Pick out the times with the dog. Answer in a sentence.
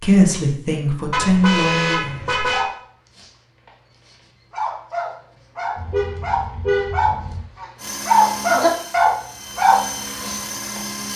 The dog can be heard from 2.5 to 11.1 s.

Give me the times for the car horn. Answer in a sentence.
You can hear the car horn from 1.1 to 2.6 s and from 5.8 to 7.4 s.